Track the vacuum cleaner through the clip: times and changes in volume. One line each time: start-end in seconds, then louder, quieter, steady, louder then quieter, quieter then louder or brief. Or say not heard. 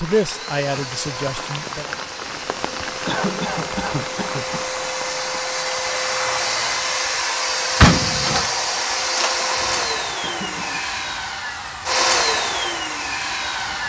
0.0-13.8 louder.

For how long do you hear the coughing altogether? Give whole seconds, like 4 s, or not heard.
2 s.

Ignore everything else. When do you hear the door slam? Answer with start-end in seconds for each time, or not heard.
7.8-8.4.